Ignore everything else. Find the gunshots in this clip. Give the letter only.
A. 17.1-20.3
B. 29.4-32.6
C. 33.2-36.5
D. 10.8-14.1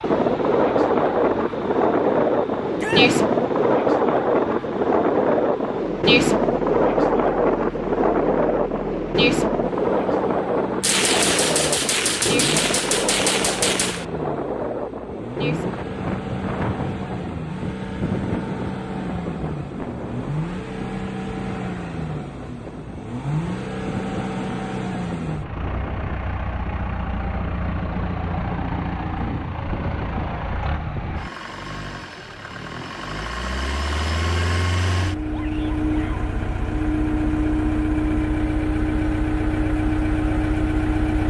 D.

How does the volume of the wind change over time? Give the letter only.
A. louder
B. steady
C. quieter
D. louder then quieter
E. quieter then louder
C.